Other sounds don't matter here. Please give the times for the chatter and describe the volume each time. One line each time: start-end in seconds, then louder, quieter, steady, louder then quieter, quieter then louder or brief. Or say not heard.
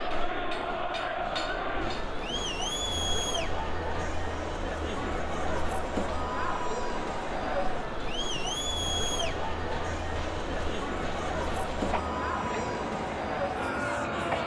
0.0-14.4 steady.